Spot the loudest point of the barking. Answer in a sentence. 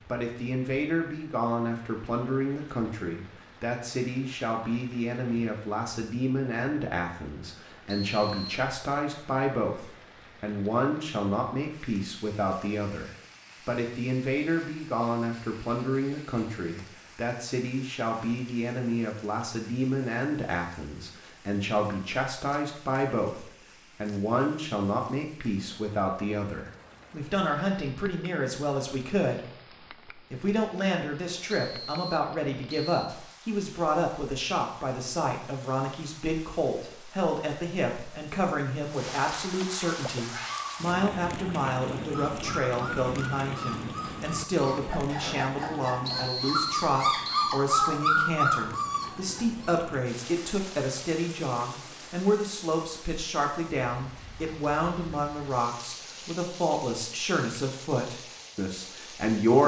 The loudest moment of the barking is at 48 seconds.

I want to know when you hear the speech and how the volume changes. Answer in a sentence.
The speech can be heard from 0.1 to 59.6 s, at a steady volume.